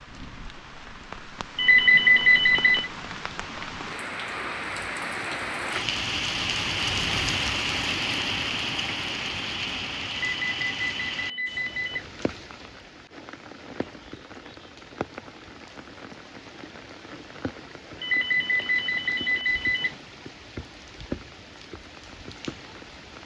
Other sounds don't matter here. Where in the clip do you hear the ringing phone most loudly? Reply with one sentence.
The volume of the ringing phone peaks at 2 seconds.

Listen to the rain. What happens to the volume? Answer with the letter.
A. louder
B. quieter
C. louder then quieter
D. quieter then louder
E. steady
C.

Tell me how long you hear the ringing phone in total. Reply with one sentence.
You can hear the ringing phone for 5 seconds altogether.